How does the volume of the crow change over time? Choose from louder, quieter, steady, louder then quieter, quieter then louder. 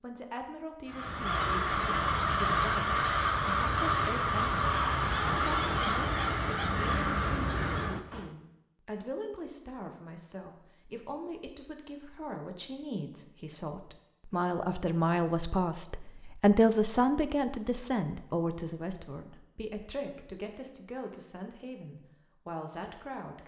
steady.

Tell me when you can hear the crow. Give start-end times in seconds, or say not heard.
0.8-8.3.